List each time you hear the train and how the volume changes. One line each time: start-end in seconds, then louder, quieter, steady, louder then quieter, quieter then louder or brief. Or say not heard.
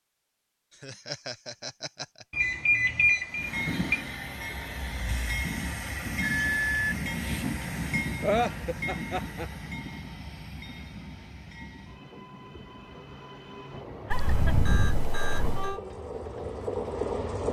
3.3-17.4 quieter then louder.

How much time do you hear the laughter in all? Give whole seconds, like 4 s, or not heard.
3 s.